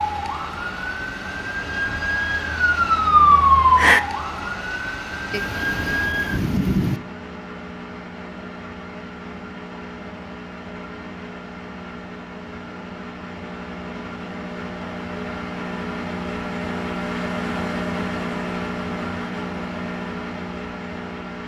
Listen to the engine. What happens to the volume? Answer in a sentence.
The loudness of the engine goes up.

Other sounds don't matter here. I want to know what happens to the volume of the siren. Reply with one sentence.
The volume of the siren goes up, then down.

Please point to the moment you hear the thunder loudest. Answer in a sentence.
The volume of the thunder peaks at 7 seconds.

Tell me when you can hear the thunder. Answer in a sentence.
The thunder can be heard from 5.3 to 7.0 s.